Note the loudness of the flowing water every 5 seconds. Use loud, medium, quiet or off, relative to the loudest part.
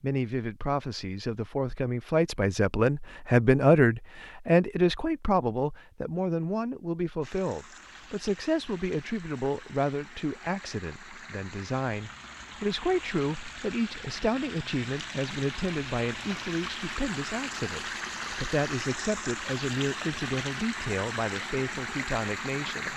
off, quiet, medium, loud, loud.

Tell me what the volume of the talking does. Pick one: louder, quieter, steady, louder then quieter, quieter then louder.
quieter.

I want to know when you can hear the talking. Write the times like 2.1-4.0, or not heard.
0.0-22.9.